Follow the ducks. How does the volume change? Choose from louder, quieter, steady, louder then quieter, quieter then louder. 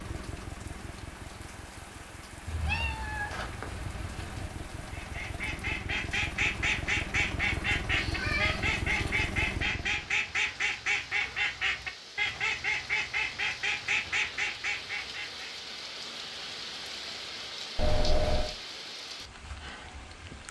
steady.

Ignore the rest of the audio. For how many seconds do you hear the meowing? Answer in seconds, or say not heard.
4 s.